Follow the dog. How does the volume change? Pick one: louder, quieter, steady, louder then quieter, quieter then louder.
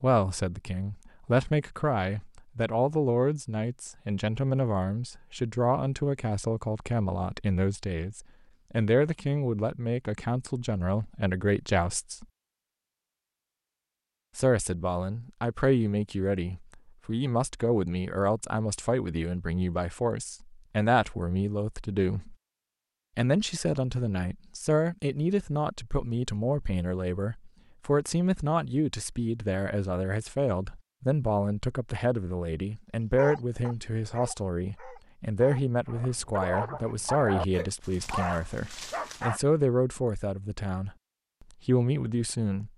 louder.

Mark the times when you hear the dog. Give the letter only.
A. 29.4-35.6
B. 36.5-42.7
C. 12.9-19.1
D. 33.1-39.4
D.